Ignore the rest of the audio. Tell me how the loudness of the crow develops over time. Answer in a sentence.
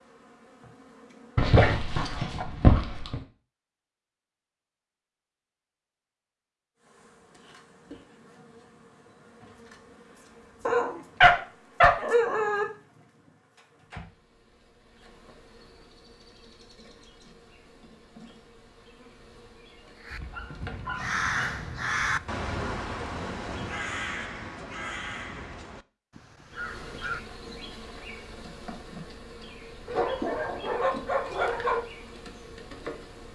The loudness of the crow goes down.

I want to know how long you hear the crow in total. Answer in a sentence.
The crow can be heard for 7 seconds in total.